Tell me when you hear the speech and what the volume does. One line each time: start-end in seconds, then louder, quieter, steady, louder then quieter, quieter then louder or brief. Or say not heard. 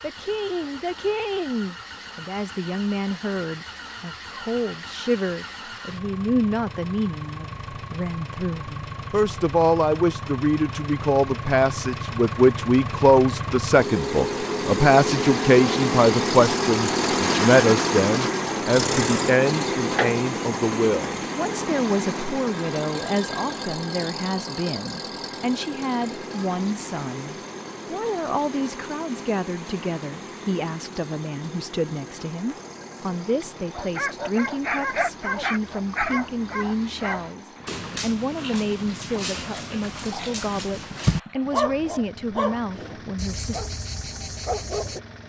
0.0-43.6 louder then quieter.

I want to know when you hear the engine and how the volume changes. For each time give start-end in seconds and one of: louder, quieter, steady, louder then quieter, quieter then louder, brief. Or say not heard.
0.0-45.2 louder then quieter.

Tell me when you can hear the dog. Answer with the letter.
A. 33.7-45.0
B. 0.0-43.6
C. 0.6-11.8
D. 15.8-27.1
A.